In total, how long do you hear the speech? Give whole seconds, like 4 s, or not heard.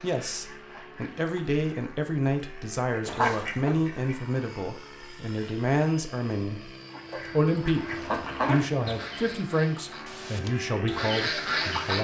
11 s.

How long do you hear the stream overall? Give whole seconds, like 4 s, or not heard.
not heard.